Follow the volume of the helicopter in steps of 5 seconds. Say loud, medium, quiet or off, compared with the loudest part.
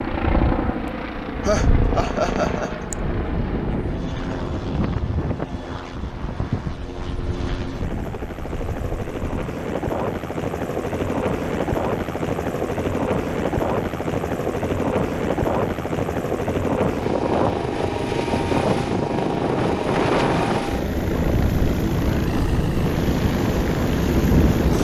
loud, medium, loud, loud, loud.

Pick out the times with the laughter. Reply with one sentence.
You can hear the laughter from 1.4 to 3.0 s.